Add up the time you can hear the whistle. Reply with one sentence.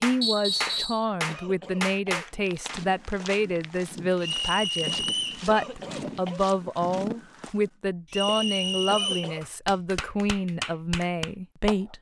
You can hear the whistle for 3 seconds altogether.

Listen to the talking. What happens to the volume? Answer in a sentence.
The loudness of the talking stays about the same.